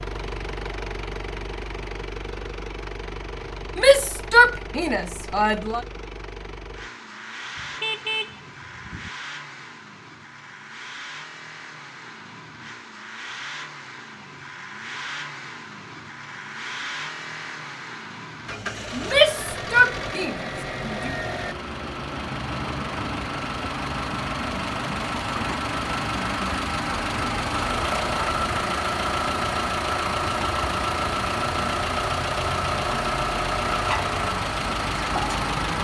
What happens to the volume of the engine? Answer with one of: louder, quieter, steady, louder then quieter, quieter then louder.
louder.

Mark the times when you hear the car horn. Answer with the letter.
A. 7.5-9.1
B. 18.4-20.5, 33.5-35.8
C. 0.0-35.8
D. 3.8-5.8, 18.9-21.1
A.